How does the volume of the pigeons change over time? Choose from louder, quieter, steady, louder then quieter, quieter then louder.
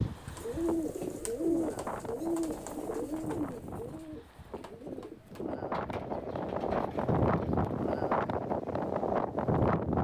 quieter.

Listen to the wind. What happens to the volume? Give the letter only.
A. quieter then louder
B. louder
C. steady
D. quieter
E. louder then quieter
B.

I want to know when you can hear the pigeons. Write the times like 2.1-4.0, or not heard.
0.1-8.0.